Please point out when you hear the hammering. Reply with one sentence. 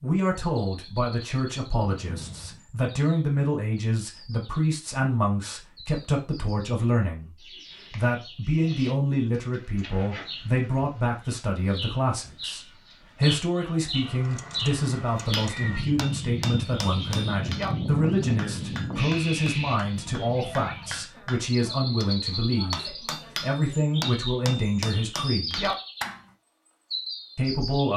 You can hear the hammering from 15.2 to 26.2 s.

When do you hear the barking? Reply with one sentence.
You can't hear the barking here.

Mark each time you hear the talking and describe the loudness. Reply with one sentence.
The talking can be heard from 0.0 to 25.7 s, at a steady volume; and briefly from 27.4 to 27.9 s.